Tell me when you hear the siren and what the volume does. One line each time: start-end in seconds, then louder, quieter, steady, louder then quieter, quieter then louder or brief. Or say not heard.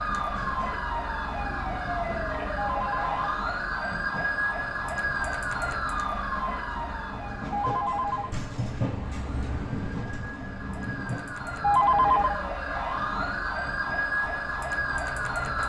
0.0-15.6 quieter then louder.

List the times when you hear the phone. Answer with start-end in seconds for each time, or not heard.
2.5-3.3, 7.5-8.4, 11.6-12.4.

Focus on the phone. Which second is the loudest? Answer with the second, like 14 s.
12 s.